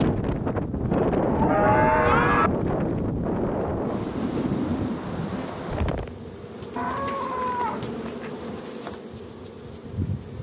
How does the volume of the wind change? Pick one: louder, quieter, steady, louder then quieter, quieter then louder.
quieter.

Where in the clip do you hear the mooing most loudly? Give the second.
2 s.